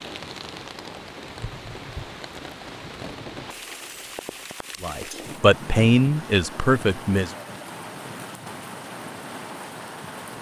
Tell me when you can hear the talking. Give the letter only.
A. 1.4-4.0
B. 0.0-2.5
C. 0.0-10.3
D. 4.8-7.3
D.